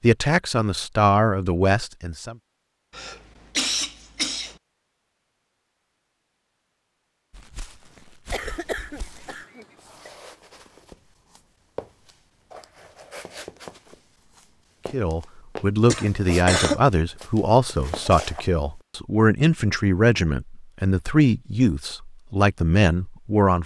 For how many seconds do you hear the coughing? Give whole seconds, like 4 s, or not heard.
4 s.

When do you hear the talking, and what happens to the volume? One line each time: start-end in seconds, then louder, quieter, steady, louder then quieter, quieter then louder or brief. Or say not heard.
0.0-2.4 brief
14.9-23.6 steady.